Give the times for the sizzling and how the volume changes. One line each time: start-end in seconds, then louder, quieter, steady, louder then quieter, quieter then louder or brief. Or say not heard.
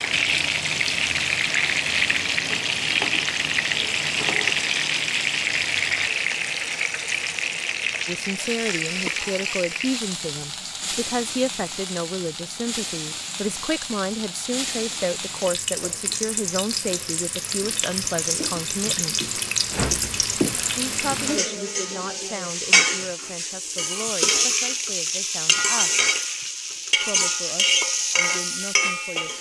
0.0-29.3 quieter then louder.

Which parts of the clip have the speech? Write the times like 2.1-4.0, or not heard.
8.1-19.2, 20.8-26.1, 26.9-29.3.